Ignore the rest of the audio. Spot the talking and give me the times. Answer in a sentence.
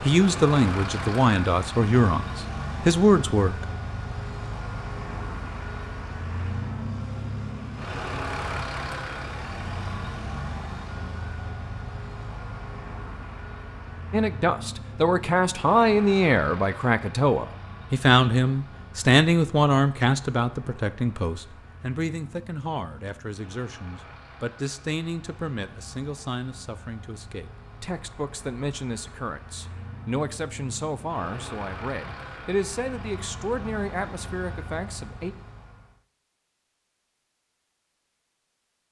You can hear the talking from 0.0 to 3.6 s and from 14.1 to 35.4 s.